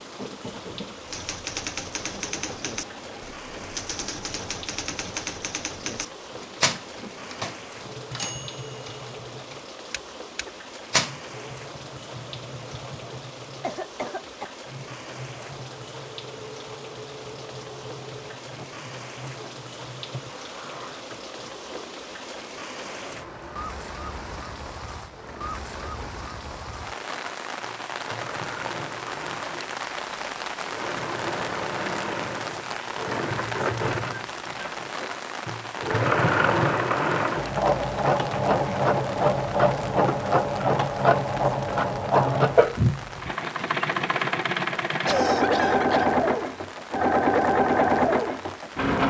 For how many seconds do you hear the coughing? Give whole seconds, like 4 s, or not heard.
2 s.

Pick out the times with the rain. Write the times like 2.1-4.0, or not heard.
0.0-49.0.